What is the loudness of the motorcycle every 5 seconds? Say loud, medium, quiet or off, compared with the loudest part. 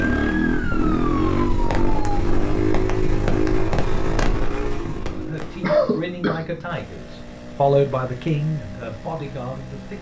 loud, quiet.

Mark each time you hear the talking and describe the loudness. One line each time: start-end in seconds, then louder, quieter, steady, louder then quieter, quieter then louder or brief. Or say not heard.
5.2-9.9 louder then quieter.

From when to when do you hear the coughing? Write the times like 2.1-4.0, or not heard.
5.6-6.5.